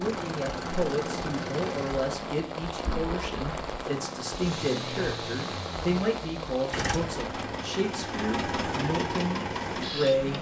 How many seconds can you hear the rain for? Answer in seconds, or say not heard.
10 s.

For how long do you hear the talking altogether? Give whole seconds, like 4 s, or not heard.
10 s.